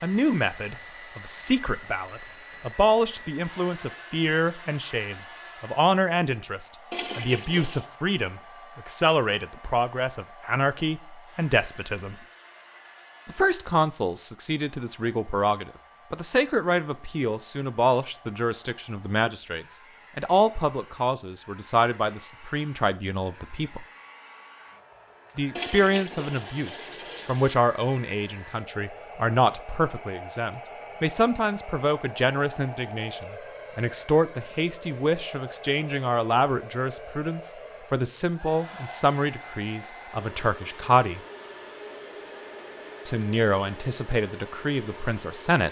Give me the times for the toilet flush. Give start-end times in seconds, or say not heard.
6.9-7.9, 25.6-27.6.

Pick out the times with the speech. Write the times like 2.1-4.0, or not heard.
0.0-12.2, 13.2-23.9, 25.4-41.2, 43.0-45.6.